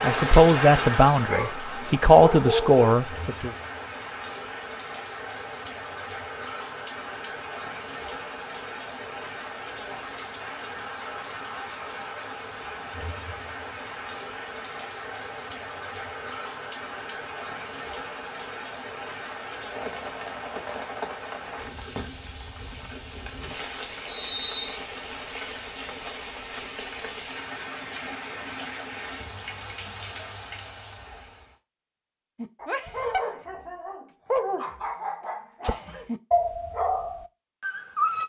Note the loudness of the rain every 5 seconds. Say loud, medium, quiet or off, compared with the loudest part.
loud, medium, medium, medium, medium, medium, medium, off.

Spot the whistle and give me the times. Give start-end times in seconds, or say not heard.
24.1-24.8.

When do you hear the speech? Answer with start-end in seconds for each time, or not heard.
0.0-3.5.